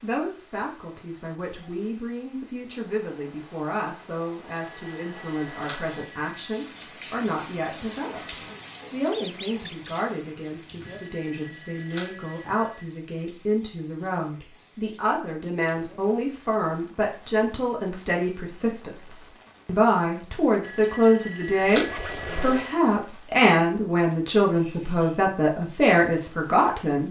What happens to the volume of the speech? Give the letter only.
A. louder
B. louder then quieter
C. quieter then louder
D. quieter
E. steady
A.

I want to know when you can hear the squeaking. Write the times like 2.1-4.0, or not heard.
9.1-10.1, 21.6-22.8.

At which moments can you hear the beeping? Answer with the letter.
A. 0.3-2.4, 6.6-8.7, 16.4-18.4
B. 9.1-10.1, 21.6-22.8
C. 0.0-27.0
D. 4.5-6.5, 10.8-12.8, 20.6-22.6
D.